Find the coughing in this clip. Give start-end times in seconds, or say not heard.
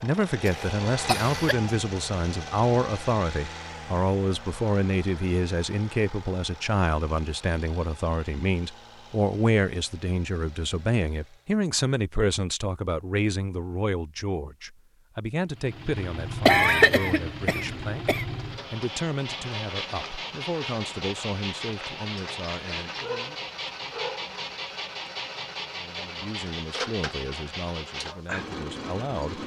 0.5-1.7, 16.4-18.2.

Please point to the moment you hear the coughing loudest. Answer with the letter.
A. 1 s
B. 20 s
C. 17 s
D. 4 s
C.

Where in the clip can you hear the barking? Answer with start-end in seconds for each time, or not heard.
23.0-24.4.